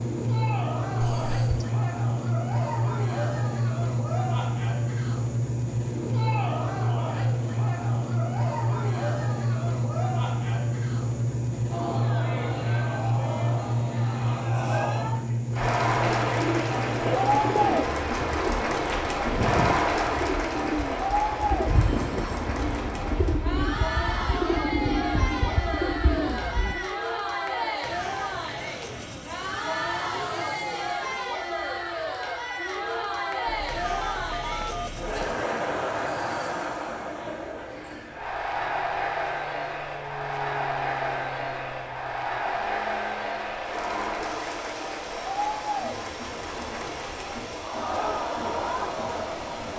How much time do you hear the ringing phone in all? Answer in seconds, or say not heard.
3 s.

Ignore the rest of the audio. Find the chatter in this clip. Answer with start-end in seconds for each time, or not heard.
0.1-49.7.